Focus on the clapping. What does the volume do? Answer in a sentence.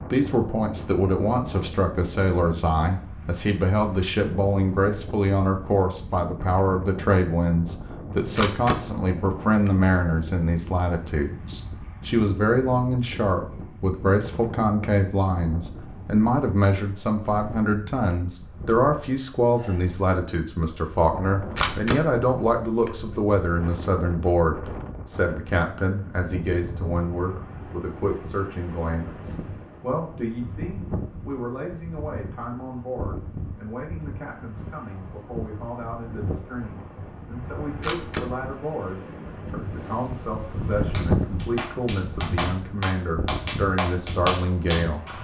The loudness of the clapping goes up.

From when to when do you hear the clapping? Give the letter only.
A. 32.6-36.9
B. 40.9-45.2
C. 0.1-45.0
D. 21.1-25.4
B.